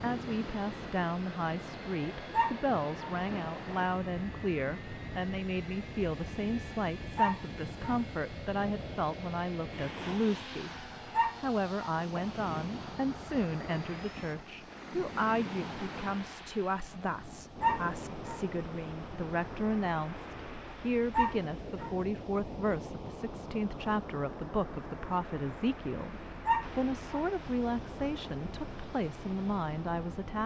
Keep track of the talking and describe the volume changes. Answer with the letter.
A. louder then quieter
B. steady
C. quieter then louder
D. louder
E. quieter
B.